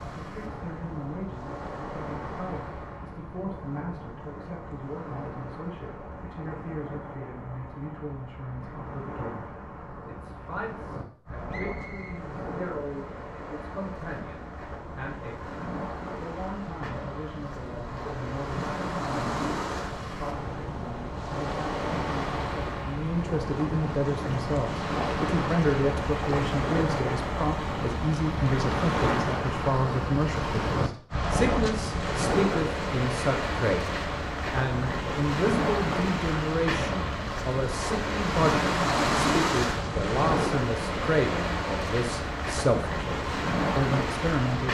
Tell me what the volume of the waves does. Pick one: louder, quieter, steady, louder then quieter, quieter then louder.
louder.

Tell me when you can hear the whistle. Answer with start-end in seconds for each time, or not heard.
11.5-12.2.